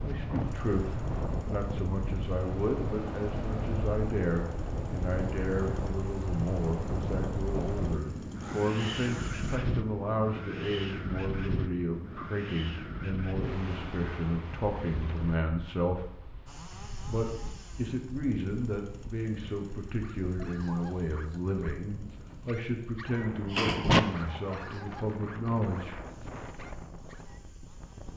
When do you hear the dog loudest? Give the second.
24 s.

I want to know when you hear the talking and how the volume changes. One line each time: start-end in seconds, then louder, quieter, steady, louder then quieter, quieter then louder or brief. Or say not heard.
0.0-16.1 steady
17.0-25.9 steady.